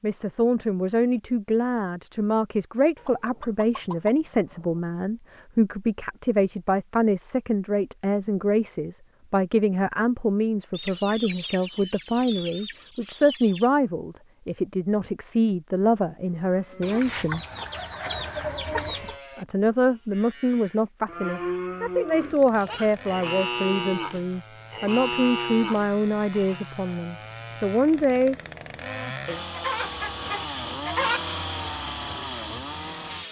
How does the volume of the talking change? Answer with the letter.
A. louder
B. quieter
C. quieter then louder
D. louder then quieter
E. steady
E.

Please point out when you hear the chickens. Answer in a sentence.
The chickens can be heard from 3.0 to 4.8 s, from 10.7 to 13.7 s, from 16.8 to 19.1 s and from 29.2 to 31.2 s.